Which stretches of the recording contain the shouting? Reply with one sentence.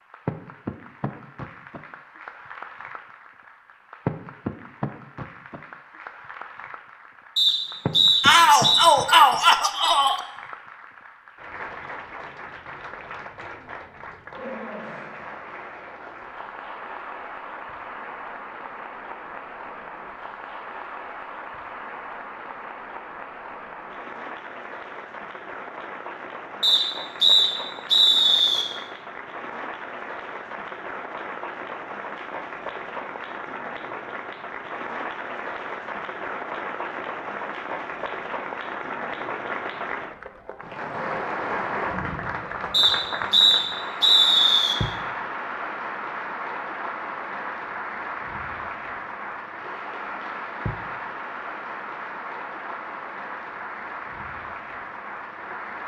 The shouting can be heard from 8.2 to 10.2 s.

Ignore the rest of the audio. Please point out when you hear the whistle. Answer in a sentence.
You can hear the whistle from 7.3 to 8.9 s, from 26.6 to 28.6 s and from 42.7 to 44.8 s.